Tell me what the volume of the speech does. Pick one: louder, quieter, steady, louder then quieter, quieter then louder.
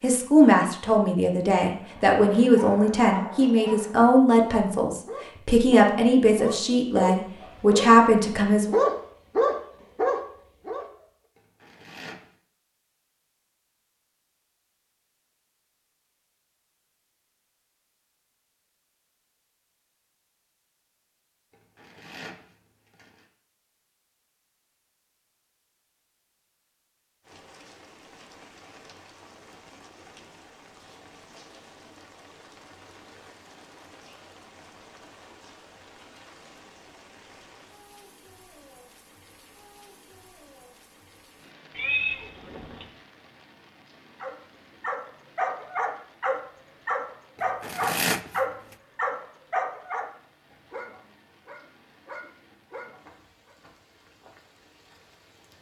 steady.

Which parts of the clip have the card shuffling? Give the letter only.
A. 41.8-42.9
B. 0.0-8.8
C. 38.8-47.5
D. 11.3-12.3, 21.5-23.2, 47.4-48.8
D.